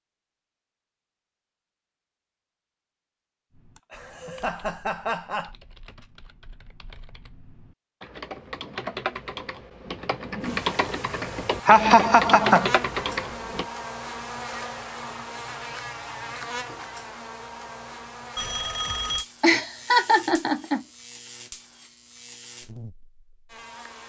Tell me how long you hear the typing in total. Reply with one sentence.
The typing can be heard for 10 seconds in total.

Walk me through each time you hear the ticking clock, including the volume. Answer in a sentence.
You can't hear the ticking clock here.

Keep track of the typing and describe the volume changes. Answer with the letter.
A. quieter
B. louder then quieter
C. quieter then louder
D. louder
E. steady
D.